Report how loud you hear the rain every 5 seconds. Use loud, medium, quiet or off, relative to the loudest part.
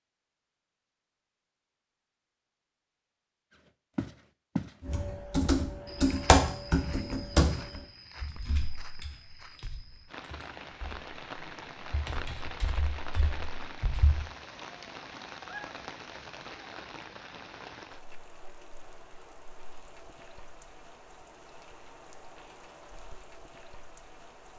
off, off, loud, loud, medium.